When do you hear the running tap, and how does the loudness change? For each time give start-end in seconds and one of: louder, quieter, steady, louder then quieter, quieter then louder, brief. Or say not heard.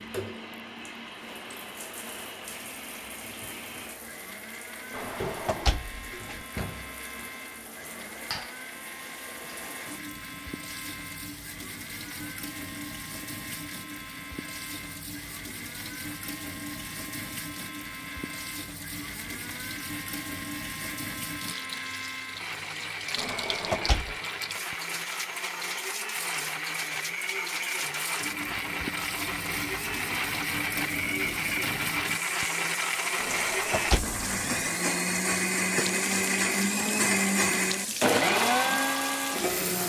0.0-39.8 louder.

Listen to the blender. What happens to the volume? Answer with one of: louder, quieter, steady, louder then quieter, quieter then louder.
louder.